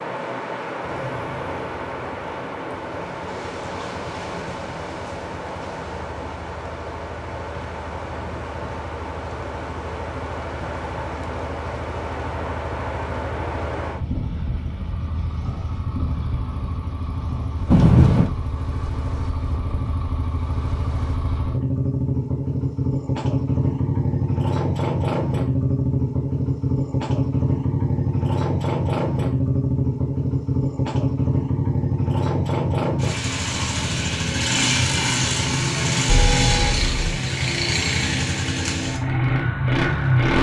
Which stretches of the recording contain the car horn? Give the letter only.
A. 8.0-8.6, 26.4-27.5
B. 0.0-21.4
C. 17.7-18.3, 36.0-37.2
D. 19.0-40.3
C.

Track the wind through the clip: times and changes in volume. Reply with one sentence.
The wind can be heard from 0.0 to 21.4 s, getting quieter.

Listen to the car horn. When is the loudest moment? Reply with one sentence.
The loudest moment of the car horn is at 18 seconds.